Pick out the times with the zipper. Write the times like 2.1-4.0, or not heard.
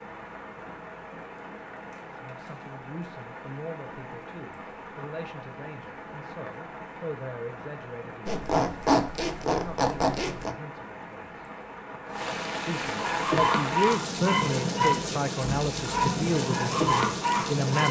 8.2-10.6.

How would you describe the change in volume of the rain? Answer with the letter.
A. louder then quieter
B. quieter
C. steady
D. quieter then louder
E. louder
E.